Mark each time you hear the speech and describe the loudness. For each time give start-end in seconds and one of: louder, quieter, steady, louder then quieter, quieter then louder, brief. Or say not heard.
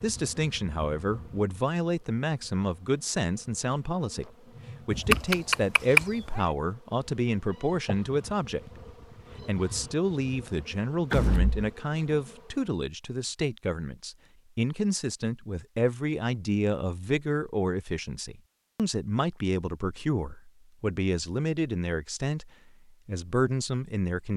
0.0-8.7 steady
9.4-24.3 steady.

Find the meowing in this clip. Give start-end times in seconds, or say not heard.
4.9-6.5.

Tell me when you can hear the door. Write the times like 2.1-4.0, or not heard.
11.1-11.7.